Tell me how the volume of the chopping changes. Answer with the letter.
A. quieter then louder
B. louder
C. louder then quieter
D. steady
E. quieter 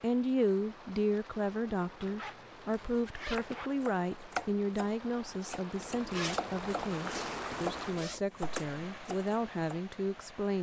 A.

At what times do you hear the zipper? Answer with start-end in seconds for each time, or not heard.
2.0-3.7, 5.8-8.2.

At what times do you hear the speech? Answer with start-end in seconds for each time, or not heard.
0.0-10.5.